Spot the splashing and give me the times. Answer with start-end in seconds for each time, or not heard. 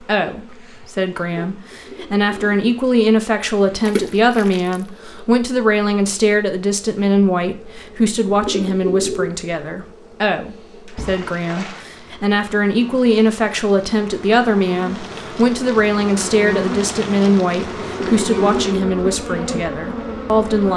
3.9-4.8, 10.8-11.9.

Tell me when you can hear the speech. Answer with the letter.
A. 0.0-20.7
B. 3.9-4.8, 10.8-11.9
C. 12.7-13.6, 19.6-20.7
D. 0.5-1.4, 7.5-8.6
A.